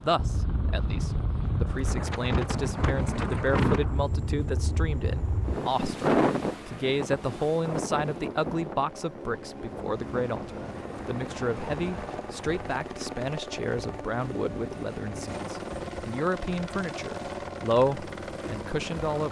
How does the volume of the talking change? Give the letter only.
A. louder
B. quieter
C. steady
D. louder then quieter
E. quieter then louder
C.